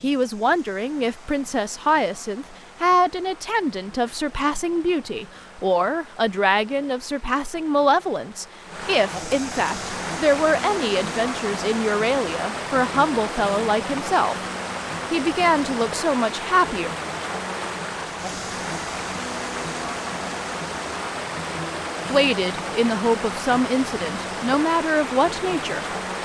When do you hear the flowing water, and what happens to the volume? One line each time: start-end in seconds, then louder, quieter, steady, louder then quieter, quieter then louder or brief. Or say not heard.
0.0-26.2 louder.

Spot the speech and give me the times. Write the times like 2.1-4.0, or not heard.
0.0-14.3, 15.1-16.9, 22.1-26.2.